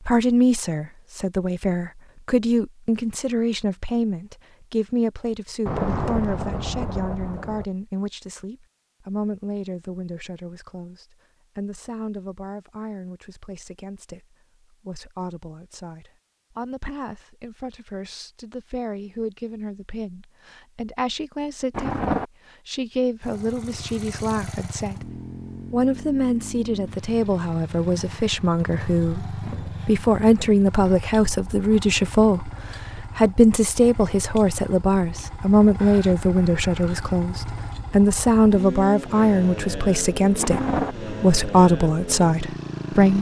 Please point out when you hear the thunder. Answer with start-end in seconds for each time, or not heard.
5.7-7.7, 21.7-22.2, 40.4-41.0.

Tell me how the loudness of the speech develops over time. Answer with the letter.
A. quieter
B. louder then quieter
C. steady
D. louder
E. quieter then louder
E.